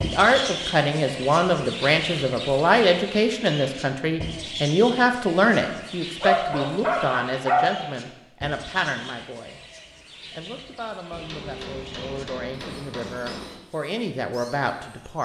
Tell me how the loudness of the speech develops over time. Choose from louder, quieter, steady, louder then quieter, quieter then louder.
quieter then louder.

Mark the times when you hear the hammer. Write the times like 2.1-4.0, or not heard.
11.1-13.6.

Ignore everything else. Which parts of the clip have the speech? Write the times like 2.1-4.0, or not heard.
0.0-9.6, 10.3-15.2.